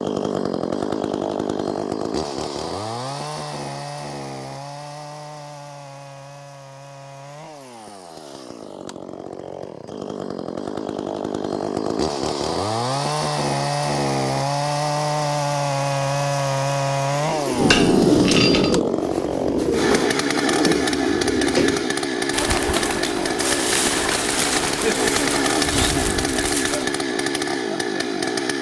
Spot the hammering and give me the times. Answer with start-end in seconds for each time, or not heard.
17.6-18.8.